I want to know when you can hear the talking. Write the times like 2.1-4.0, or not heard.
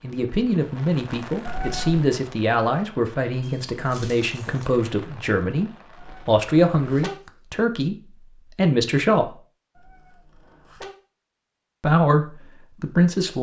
0.0-9.3, 11.8-13.3.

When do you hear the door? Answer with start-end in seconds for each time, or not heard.
not heard.